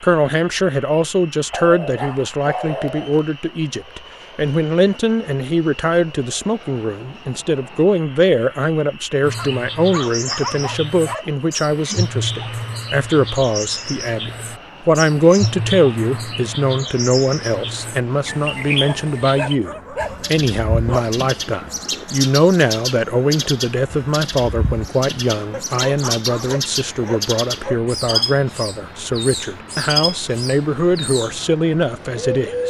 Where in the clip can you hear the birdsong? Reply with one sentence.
You can hear the birdsong from 9.2 to 31.4 s and from 32.1 to 32.6 s.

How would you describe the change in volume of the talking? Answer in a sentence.
The loudness of the talking stays about the same.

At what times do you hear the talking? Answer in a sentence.
You can hear the talking from 0.0 to 32.6 s.